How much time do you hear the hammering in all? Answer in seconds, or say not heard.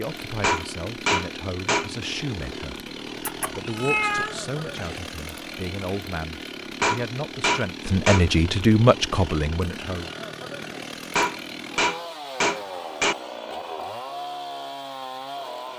5 s.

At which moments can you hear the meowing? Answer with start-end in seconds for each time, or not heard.
3.2-5.0.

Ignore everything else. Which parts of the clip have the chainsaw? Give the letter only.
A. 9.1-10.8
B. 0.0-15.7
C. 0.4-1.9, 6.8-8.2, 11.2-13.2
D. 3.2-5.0
B.